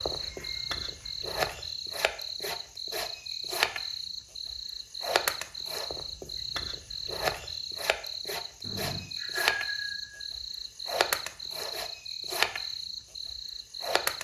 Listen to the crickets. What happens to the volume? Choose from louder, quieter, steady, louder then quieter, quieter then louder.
steady.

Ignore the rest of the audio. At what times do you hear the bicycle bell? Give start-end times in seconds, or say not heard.
0.1-1.1, 8.6-10.2.